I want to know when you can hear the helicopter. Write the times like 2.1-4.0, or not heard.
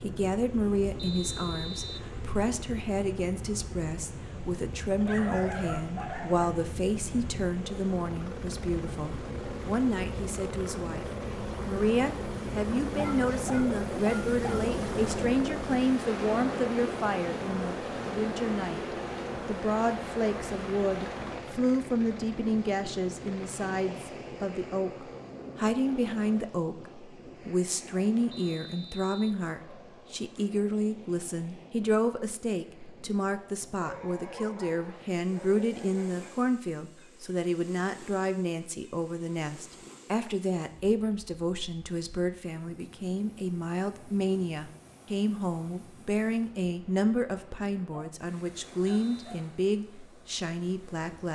0.0-26.5.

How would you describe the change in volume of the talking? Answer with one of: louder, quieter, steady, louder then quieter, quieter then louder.
steady.